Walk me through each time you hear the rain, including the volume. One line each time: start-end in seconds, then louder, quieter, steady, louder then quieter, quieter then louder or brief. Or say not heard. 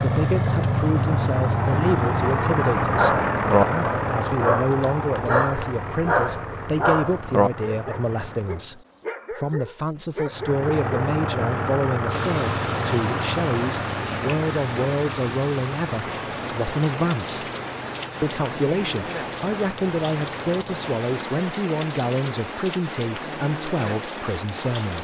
12.1-24.9 steady.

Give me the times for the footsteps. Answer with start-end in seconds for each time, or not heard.
not heard.